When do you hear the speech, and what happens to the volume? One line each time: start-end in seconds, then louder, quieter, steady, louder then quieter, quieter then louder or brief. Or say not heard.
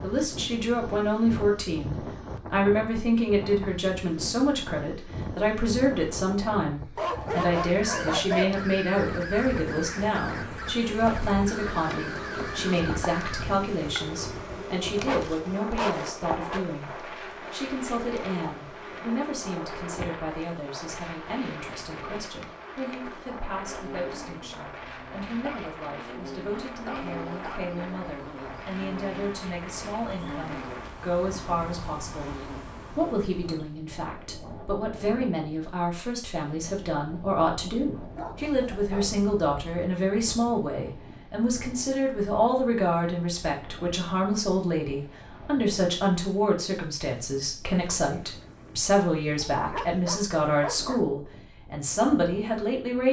0.0-53.0 quieter then louder.